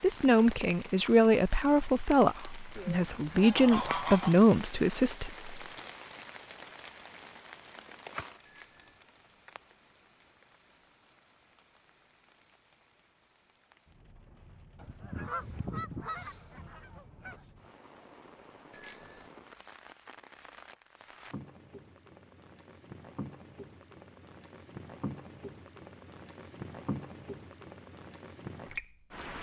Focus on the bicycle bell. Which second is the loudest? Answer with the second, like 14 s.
19 s.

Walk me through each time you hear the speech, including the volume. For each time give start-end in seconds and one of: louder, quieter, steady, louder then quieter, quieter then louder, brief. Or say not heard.
0.0-5.5 quieter then louder.